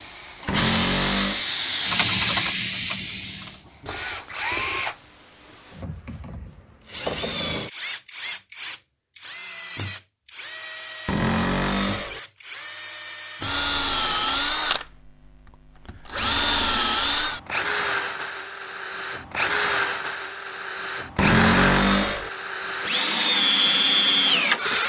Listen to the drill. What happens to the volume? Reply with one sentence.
The volume of the drill goes up.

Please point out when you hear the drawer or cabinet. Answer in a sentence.
You can hear the drawer or cabinet from 0.5 to 1.4 s, from 11.1 to 12.2 s and from 21.1 to 22.3 s.